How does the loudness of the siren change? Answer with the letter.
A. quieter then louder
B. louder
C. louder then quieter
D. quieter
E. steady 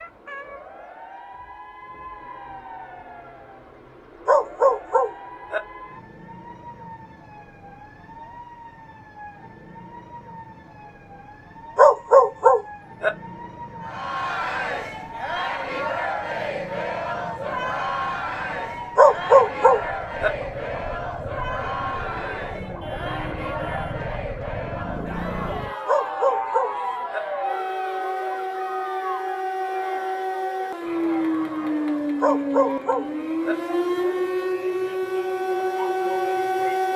B.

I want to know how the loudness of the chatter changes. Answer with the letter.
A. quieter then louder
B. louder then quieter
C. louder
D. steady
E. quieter
E.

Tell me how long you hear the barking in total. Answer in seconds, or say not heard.
7 s.